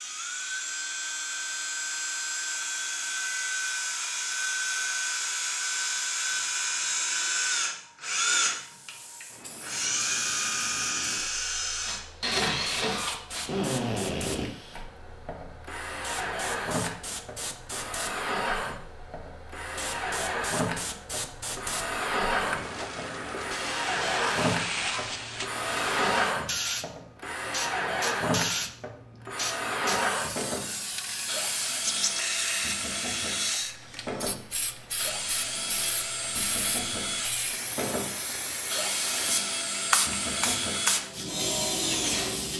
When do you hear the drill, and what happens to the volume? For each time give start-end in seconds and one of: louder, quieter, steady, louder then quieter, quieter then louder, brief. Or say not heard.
0.0-42.5 steady.